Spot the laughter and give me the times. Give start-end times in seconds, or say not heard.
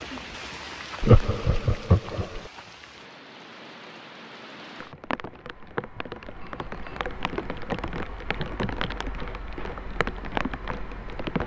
1.0-2.4.